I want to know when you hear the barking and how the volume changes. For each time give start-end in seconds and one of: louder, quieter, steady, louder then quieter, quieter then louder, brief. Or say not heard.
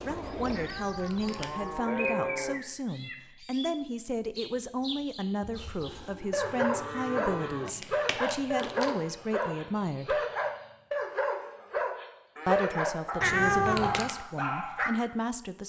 5.5-14.9 steady.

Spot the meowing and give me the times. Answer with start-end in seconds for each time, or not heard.
0.6-1.5, 7.0-8.9, 13.2-14.2.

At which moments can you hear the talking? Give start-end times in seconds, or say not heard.
0.0-10.2, 12.4-15.6.